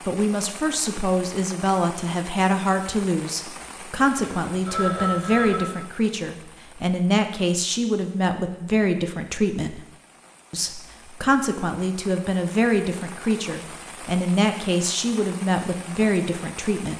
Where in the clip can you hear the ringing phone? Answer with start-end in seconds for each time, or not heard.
4.2-5.8.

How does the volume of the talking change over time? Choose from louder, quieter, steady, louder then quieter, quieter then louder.
steady.